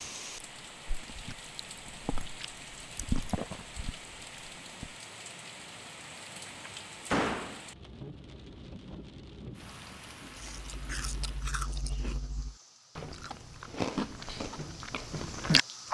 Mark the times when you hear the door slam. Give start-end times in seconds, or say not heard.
6.5-7.6.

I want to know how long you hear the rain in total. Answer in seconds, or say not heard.
16 s.